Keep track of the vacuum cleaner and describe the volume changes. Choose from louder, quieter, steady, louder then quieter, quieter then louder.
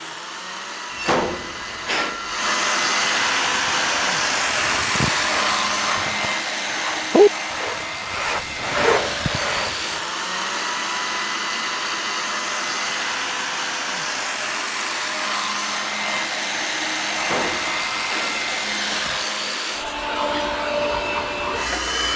steady.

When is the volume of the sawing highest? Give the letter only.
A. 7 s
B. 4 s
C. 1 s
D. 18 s
A.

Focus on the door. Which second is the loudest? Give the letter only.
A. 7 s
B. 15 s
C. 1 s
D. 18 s
C.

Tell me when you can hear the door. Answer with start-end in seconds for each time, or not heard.
0.9-2.5, 17.1-19.1.